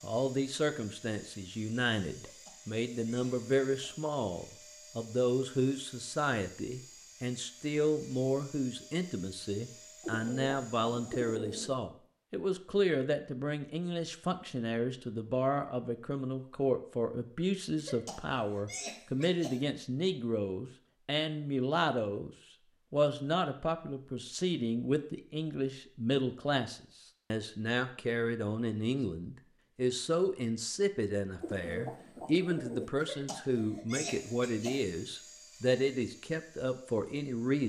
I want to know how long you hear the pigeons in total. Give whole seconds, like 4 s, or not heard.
3 s.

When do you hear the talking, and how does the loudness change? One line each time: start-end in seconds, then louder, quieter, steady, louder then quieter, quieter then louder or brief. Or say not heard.
0.0-22.3 steady
22.9-37.6 steady.